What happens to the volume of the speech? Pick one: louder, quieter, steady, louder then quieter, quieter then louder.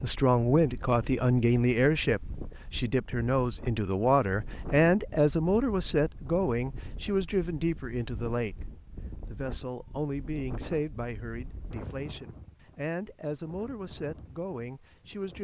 quieter.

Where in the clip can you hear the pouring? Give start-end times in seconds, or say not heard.
not heard.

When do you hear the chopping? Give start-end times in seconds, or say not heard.
not heard.